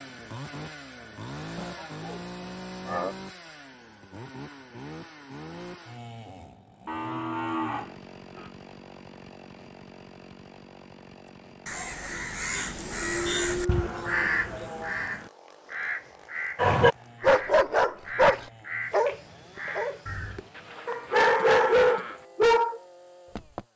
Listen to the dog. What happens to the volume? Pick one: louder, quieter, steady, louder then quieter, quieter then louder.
quieter then louder.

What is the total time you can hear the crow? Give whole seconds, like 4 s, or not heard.
9 s.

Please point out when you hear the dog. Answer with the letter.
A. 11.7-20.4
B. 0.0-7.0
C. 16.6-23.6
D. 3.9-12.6
C.